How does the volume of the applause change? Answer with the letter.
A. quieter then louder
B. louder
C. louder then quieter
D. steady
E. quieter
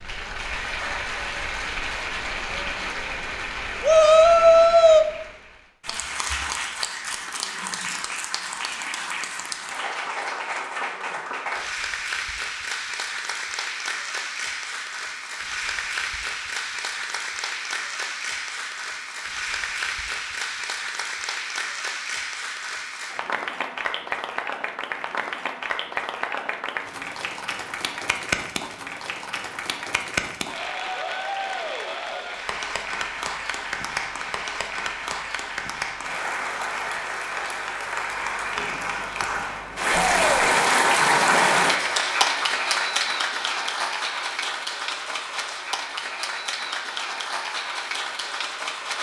B.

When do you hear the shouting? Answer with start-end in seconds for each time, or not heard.
3.8-5.0, 39.9-40.5.